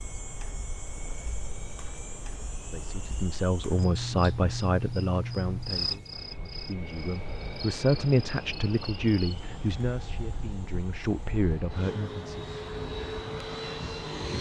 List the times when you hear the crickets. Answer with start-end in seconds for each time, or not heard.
0.0-11.7.